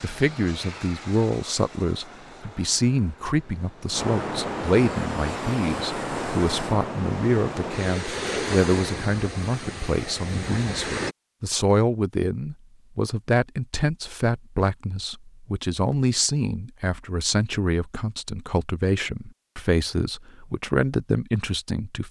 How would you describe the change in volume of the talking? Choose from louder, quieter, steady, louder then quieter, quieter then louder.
steady.